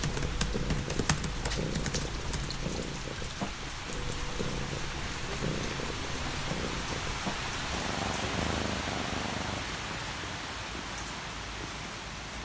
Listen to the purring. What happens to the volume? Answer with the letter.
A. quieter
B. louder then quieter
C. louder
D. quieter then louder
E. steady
A.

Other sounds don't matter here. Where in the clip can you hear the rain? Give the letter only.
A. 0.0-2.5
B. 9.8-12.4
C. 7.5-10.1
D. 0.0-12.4
D.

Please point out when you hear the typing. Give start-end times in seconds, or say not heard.
0.0-2.5.